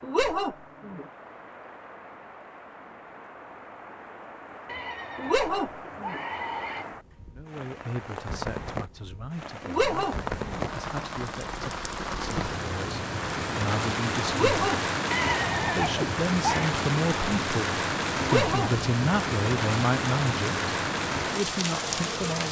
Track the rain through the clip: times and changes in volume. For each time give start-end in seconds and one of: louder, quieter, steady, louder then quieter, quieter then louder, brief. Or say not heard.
0.0-22.4 louder.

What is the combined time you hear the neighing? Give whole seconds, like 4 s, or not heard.
4 s.